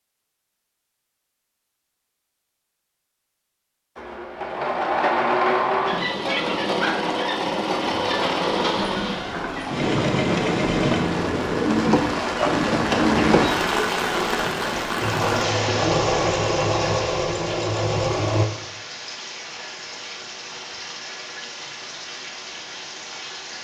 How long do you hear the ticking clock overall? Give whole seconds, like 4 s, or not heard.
not heard.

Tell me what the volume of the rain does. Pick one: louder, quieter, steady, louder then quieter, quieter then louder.
louder then quieter.